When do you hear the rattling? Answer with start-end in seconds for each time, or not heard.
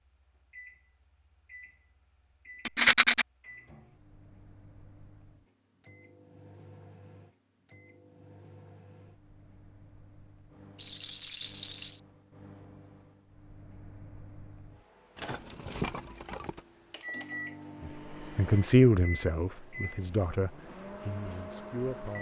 2.6-3.2, 10.8-12.0, 15.2-16.6.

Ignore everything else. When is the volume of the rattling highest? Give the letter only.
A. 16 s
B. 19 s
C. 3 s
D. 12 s
C.